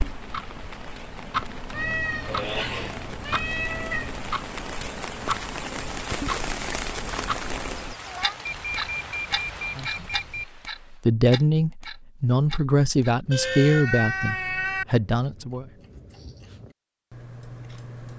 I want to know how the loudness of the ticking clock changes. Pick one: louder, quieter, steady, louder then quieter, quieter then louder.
quieter.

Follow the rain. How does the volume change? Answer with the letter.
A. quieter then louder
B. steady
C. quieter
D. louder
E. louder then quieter
E.